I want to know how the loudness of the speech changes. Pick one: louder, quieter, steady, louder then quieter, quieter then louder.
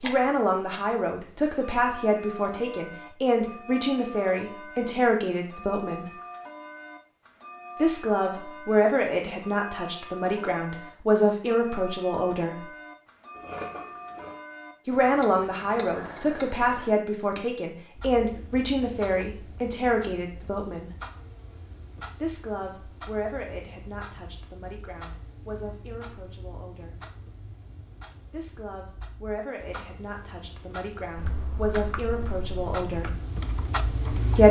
quieter then louder.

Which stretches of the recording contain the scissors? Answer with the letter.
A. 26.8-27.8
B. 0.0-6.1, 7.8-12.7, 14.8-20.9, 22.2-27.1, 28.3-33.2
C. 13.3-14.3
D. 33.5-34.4
C.